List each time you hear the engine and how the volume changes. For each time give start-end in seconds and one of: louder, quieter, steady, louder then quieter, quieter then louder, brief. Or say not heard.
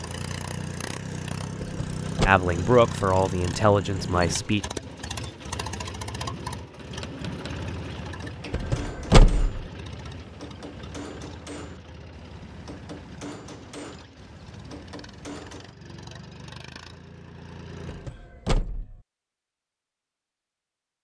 0.0-18.1 quieter.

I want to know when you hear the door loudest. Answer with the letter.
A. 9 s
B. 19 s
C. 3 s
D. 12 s
A.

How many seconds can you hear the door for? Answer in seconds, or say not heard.
3 s.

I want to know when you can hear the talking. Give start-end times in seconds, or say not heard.
2.2-4.7.